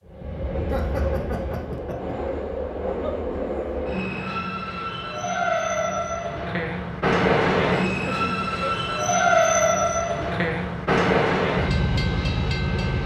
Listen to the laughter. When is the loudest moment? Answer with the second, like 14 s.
1 s.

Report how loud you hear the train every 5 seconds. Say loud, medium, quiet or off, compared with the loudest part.
medium, loud, loud.